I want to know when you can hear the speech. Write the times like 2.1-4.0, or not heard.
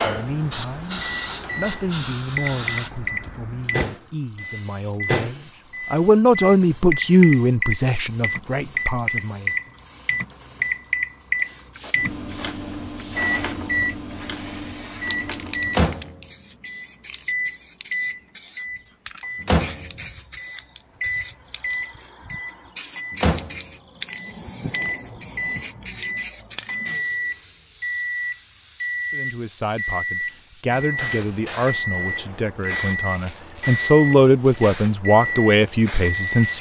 0.0-9.5, 29.1-36.5.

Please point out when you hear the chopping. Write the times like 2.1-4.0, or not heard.
not heard.